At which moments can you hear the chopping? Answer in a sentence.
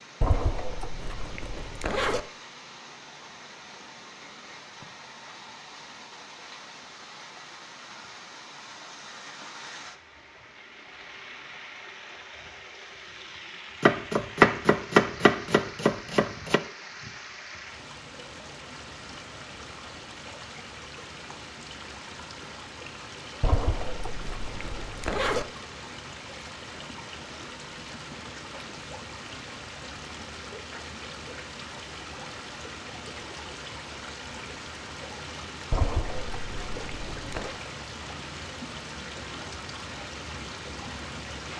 You can hear the chopping from 13.8 to 16.6 s.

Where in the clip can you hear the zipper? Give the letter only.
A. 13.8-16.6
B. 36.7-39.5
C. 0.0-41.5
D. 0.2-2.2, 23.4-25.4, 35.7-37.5
D.